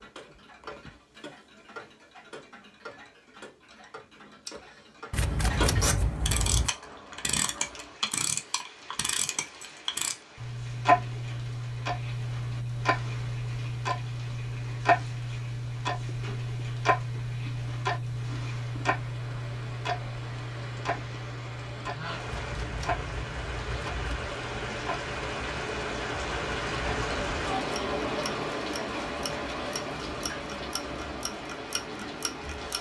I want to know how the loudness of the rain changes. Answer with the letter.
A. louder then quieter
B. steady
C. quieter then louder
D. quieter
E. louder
E.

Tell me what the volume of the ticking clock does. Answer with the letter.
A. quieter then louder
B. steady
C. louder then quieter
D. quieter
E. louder
C.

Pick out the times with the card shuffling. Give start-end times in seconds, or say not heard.
5.1-6.7, 22.2-24.3.